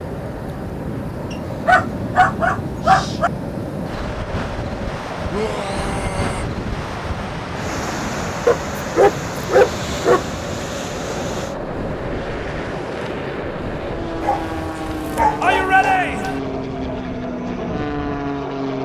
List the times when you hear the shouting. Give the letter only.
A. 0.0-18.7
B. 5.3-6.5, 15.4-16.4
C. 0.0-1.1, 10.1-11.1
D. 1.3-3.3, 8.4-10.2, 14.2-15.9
B.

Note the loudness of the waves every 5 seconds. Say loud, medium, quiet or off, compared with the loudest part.
loud, loud, loud, medium.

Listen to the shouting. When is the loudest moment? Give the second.
16 s.